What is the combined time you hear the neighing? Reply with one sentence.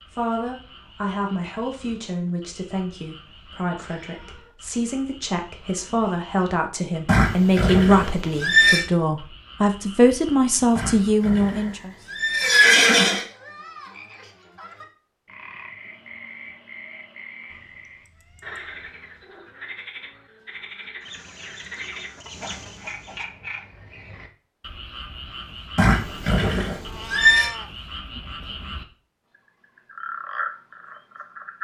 The neighing can be heard for 6 seconds in total.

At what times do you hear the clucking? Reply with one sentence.
You can hear the clucking from 21.0 to 23.2 s.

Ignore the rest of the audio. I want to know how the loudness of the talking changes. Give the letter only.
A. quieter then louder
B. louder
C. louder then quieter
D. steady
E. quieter
B.